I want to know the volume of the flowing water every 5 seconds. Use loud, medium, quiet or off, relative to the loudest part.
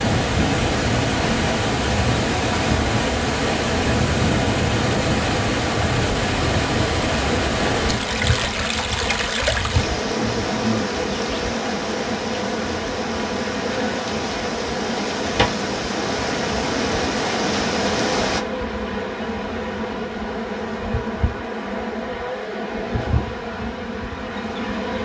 loud, loud, medium, loud, off.